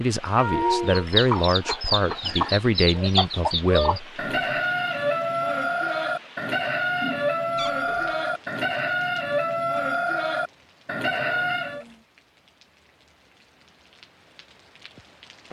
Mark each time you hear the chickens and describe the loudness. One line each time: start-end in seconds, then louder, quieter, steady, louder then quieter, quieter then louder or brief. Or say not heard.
0.7-11.8 steady.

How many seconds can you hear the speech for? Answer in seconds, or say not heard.
4 s.